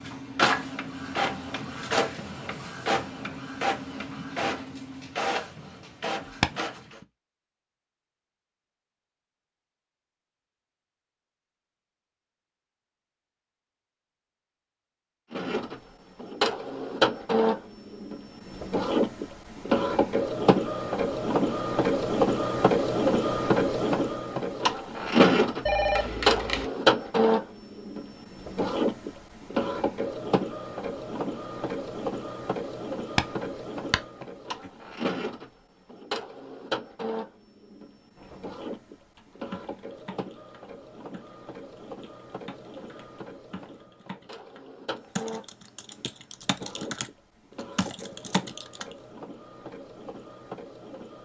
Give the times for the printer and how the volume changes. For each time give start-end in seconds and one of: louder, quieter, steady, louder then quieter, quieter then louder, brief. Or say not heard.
0.0-7.0 quieter
15.3-51.2 quieter.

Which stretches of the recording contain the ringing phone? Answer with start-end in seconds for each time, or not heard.
25.6-26.7.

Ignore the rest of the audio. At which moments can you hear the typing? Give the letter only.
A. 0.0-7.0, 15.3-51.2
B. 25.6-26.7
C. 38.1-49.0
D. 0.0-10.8
C.